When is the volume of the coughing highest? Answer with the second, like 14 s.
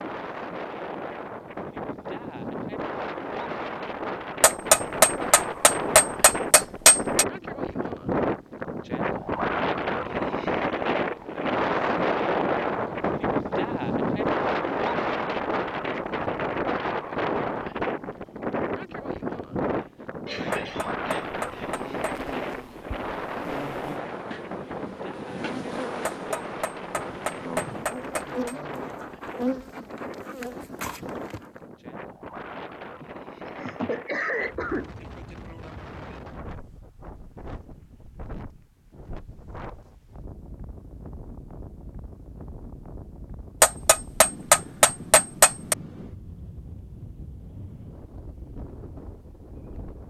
34 s.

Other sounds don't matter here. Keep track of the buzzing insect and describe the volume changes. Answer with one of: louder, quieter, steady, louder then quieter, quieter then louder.
louder.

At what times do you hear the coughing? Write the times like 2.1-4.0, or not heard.
19.8-21.7, 33.0-34.9.